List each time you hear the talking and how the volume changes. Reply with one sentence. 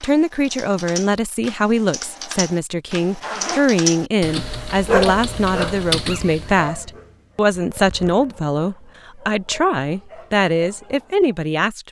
You can hear the talking from 0.0 to 11.8 s, at a steady volume.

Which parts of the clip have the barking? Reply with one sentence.
The barking can be heard from 4.8 to 11.4 s.